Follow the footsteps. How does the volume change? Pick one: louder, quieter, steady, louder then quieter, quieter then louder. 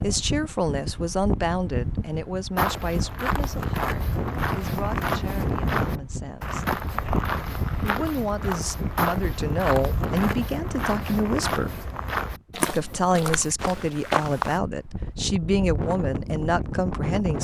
steady.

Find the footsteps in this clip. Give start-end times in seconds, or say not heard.
2.5-14.6.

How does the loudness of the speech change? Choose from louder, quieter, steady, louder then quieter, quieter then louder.
quieter then louder.